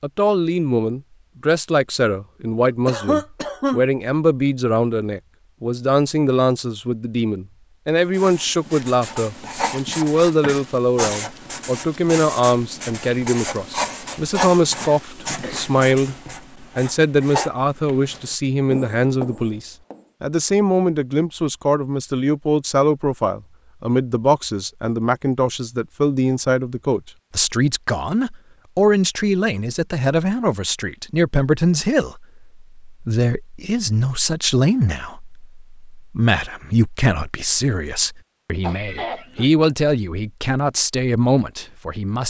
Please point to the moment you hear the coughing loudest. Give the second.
3 s.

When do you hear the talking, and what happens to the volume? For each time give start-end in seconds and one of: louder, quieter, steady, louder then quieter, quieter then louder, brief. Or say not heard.
0.0-16.1 steady
16.8-42.2 steady.